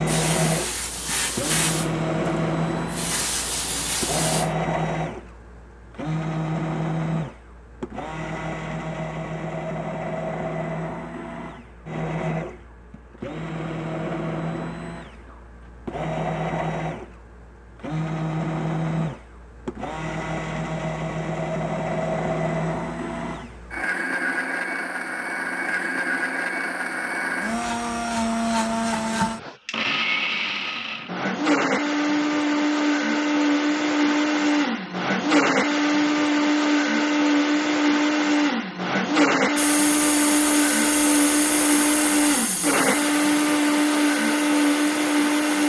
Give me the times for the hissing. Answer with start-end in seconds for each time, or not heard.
0.0-4.5, 39.5-45.6.